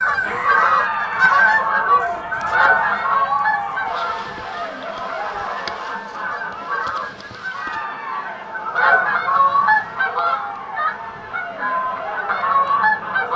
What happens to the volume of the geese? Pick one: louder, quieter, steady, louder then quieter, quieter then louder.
quieter then louder.